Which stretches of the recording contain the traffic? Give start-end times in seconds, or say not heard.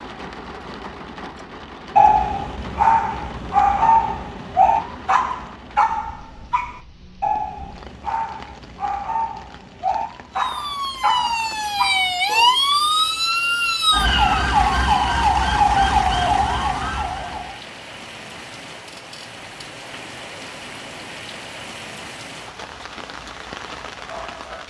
not heard.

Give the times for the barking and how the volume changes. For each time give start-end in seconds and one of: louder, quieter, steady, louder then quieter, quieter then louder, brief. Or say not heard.
1.9-12.6 quieter.